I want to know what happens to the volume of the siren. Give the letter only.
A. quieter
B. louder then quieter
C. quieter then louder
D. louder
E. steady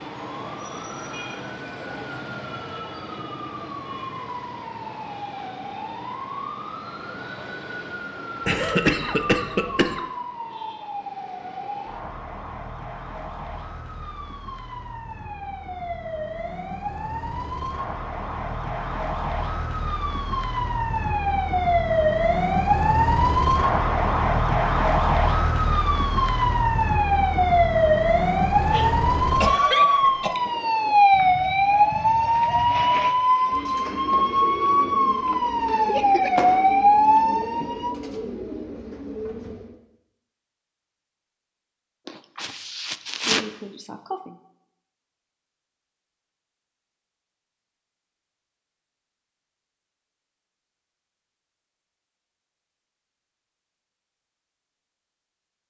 D.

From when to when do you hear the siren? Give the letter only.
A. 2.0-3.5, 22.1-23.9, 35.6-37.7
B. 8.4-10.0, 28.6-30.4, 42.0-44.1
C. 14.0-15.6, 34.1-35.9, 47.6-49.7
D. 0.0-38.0
D.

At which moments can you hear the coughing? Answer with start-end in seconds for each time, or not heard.
8.4-10.0, 28.6-30.4, 42.0-44.1.